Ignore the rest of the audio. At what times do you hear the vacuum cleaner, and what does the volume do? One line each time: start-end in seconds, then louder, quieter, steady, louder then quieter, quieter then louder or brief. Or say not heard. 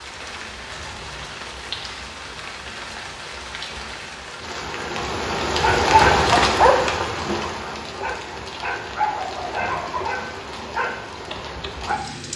not heard.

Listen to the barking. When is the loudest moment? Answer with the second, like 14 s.
6 s.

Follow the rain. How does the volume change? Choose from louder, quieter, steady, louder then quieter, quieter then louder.
louder then quieter.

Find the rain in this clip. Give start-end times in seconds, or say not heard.
0.0-12.3.